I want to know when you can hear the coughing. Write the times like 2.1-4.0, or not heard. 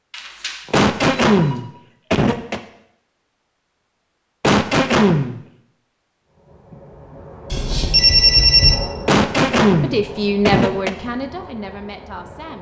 0.7-2.6, 4.4-5.4, 9.1-10.9.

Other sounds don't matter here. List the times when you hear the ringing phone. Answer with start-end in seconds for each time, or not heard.
0.1-1.6, 7.5-8.8.